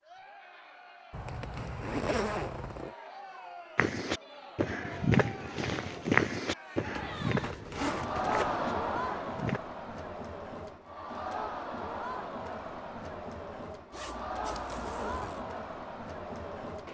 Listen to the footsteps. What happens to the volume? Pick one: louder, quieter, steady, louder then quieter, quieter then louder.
quieter.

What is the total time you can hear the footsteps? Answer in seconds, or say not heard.
6 s.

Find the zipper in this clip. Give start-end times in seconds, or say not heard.
1.1-3.0, 6.9-8.7, 13.9-15.4.